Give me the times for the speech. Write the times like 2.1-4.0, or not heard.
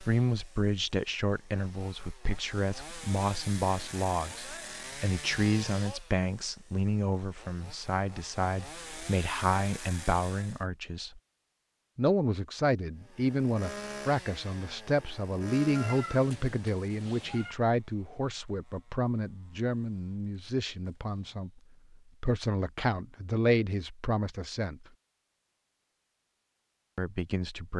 0.0-11.2, 11.9-24.9, 26.9-27.7.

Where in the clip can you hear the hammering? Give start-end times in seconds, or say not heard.
not heard.